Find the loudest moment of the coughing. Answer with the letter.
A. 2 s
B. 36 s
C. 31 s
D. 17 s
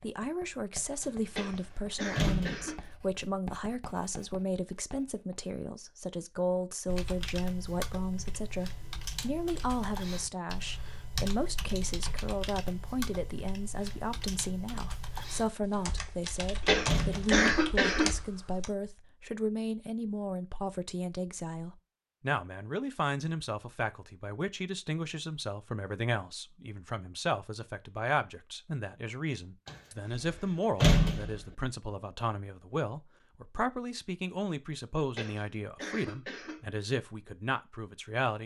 D.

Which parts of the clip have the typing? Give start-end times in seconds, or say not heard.
6.8-18.7.